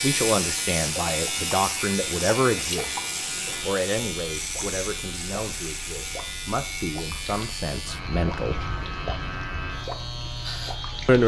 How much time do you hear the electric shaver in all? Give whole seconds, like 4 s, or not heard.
11 s.